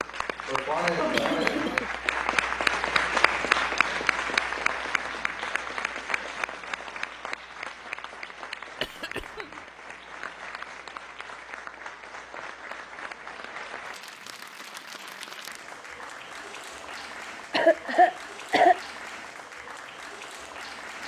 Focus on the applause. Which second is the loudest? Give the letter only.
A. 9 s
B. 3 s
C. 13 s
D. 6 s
B.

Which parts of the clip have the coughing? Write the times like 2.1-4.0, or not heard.
0.5-1.9, 8.8-9.5, 17.5-18.8.